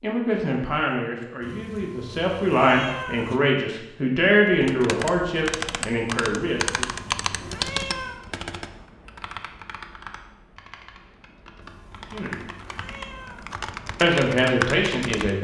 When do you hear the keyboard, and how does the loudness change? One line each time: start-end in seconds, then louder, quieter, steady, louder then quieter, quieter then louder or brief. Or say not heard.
4.5-15.3 quieter then louder.